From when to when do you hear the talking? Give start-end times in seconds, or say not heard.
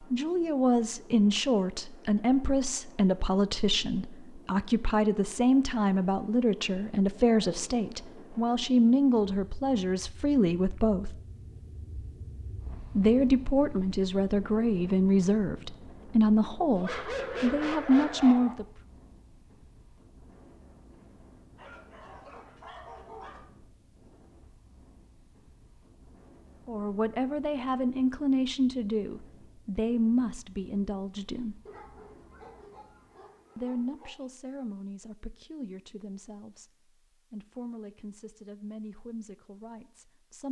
0.1-11.2, 12.9-18.6, 26.6-31.6, 33.5-40.4.